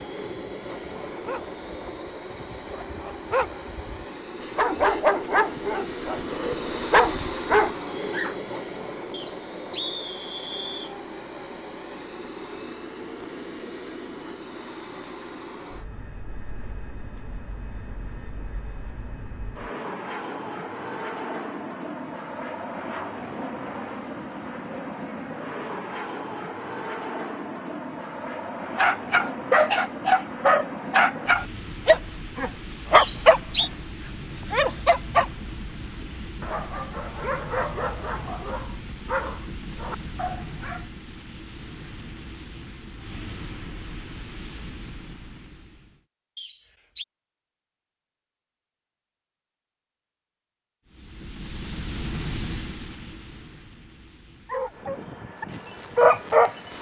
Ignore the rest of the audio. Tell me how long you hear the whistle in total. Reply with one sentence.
You can hear the whistle for 3 seconds altogether.